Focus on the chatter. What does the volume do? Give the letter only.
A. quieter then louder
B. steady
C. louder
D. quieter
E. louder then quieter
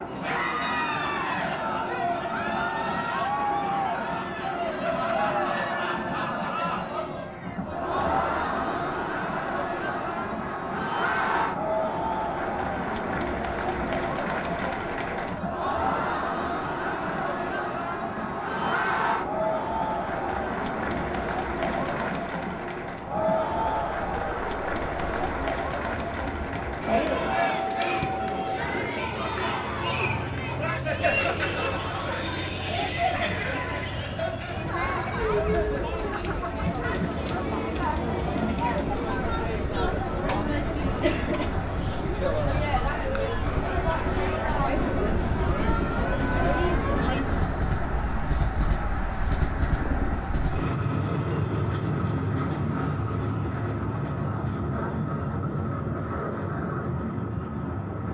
B.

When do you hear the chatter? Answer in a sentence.
You can hear the chatter from 0.1 to 47.2 s.